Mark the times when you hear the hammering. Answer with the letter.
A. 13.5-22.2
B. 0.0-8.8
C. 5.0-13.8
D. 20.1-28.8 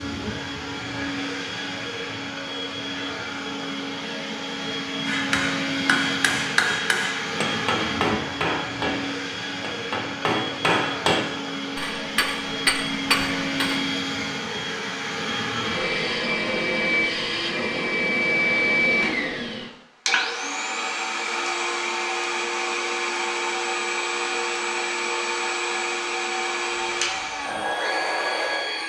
C.